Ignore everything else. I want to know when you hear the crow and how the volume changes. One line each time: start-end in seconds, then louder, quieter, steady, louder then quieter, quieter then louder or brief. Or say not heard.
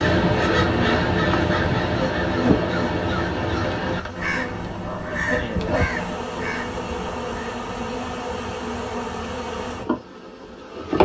0.0-7.6 quieter.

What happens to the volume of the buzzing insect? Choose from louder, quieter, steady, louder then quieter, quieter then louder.
steady.